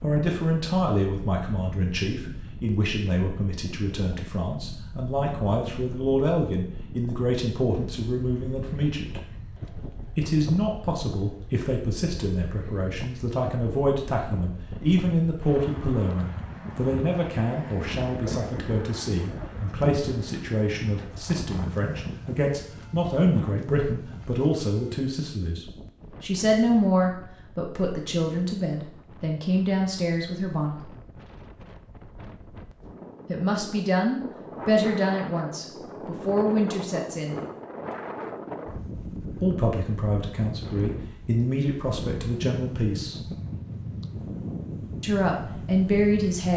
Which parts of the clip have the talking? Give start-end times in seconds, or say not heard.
0.0-9.2, 10.2-30.9, 33.2-37.4, 39.4-43.3, 45.0-46.5.